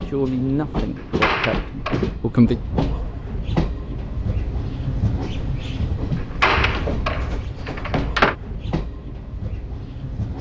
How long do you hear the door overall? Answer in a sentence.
The door can be heard for 3 seconds in total.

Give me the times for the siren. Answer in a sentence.
The siren can't be heard in this clip.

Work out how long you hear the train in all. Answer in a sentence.
The train can be heard for 10 seconds in total.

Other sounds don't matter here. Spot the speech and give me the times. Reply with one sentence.
The speech can be heard from 0.0 to 2.5 s.